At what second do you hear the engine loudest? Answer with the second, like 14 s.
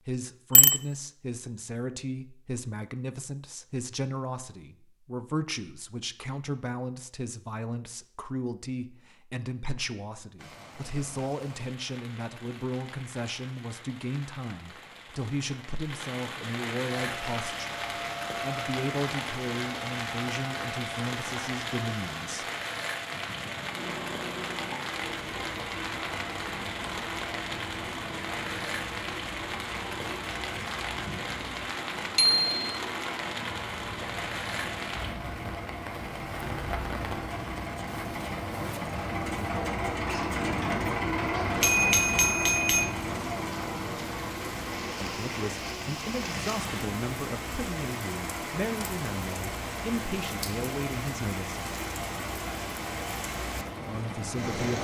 41 s.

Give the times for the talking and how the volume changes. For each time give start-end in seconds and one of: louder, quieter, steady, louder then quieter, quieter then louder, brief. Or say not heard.
0.1-22.4 steady
45.0-51.6 steady
53.9-54.7 brief.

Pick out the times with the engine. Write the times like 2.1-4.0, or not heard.
17.0-54.6.